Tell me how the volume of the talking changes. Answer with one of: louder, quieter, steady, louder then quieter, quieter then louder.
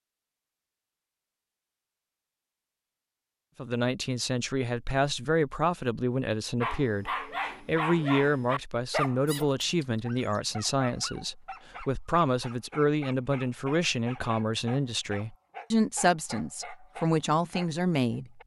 steady.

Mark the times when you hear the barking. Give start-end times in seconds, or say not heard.
6.6-18.4.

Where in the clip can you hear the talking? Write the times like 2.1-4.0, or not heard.
3.5-18.4.